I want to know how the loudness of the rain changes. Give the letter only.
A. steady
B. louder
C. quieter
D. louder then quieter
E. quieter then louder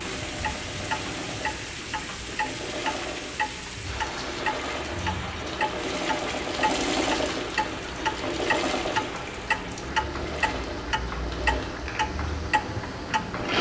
A.